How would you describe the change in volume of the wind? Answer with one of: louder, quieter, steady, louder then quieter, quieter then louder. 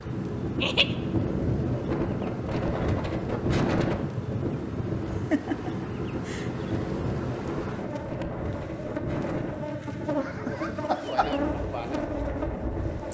quieter.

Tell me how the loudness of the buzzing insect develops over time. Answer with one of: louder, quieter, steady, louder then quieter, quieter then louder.
louder.